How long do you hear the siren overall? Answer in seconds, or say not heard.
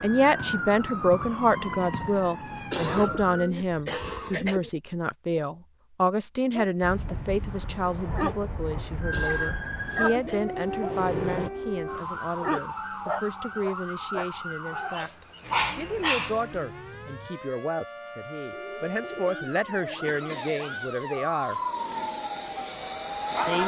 18 s.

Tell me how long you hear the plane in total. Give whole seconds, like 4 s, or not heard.
8 s.